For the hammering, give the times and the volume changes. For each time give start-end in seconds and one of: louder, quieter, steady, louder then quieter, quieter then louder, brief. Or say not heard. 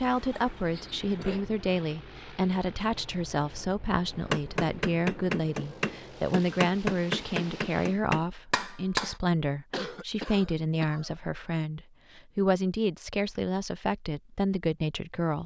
4.1-9.2 steady.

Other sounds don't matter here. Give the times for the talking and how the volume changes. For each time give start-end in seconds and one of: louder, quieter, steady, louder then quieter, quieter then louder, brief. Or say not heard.
0.0-15.4 steady.